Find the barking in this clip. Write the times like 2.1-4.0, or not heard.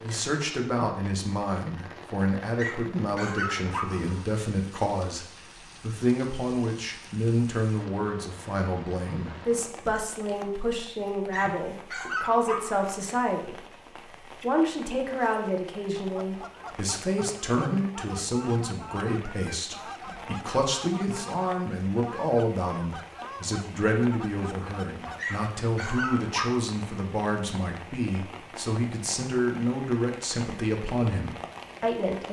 2.5-4.2, 11.3-12.8, 25.1-26.6.